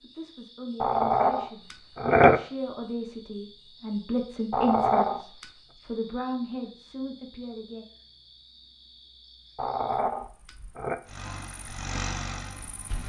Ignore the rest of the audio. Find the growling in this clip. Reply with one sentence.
The growling can be heard from 0.8 to 2.4 s, from 4.5 to 5.5 s and from 9.6 to 10.9 s.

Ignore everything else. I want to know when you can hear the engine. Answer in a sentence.
The engine can be heard from 11.1 to 13.0 s.